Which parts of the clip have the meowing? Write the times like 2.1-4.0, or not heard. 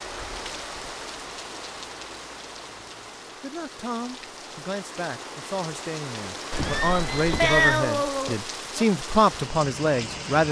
7.4-8.8.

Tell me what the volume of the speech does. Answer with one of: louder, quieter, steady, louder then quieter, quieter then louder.
louder.